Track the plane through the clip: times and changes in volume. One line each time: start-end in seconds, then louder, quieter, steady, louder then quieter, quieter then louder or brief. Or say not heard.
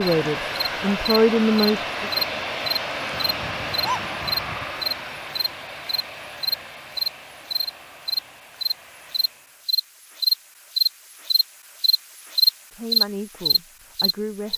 0.0-9.7 quieter.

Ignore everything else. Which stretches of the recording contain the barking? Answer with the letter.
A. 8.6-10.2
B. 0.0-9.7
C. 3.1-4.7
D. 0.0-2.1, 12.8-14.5
C.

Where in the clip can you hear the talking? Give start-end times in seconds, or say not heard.
0.0-2.1, 12.8-14.5.